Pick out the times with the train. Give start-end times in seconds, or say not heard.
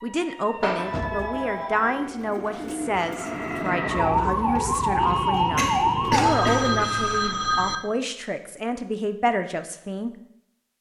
not heard.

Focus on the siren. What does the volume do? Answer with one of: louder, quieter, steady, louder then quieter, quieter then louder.
louder.